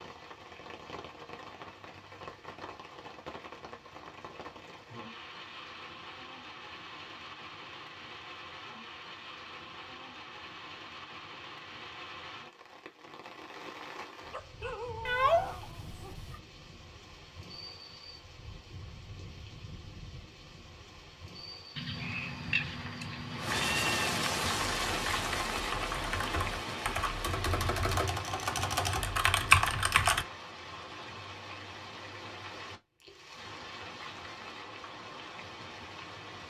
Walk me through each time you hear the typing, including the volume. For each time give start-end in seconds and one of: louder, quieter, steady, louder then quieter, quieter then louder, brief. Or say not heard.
24.6-30.2 louder.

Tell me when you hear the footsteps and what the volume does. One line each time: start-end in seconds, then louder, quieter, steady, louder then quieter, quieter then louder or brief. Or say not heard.
not heard.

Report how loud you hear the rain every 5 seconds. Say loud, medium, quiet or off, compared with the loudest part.
medium, medium, medium, quiet, loud, loud, medium, medium.